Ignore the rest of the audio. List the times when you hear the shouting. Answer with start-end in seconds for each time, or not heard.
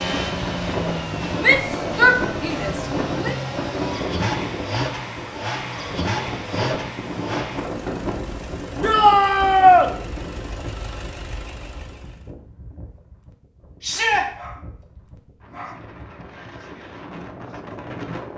1.4-3.4, 8.8-9.9, 13.8-14.2.